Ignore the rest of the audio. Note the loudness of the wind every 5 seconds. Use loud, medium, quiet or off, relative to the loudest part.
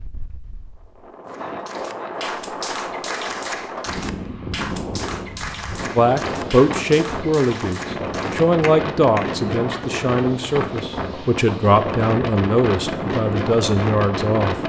medium, loud, loud.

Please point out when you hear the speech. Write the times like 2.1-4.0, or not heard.
6.0-14.6.